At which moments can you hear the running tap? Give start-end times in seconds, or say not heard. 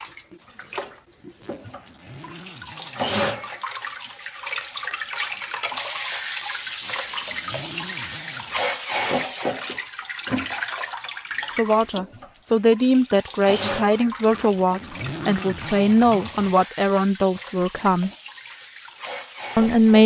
0.0-20.0.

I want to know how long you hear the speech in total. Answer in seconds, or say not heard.
7 s.